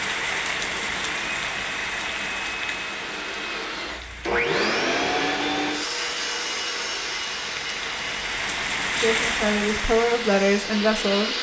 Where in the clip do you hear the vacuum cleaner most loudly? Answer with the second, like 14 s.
5 s.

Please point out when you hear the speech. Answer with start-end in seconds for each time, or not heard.
8.9-11.3.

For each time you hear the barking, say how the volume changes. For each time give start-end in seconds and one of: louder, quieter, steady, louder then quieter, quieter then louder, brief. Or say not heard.
not heard.